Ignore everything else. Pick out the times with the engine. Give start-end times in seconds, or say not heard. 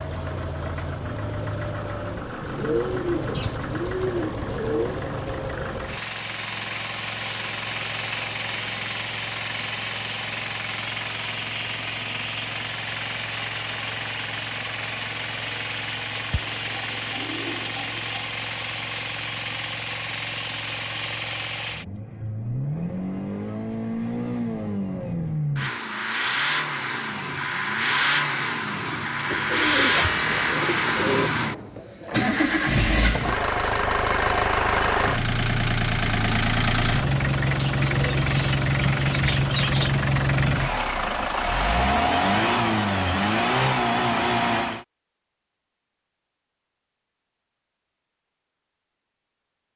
0.0-44.9.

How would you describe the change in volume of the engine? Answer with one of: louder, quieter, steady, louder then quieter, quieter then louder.
louder.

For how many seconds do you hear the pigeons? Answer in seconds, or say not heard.
9 s.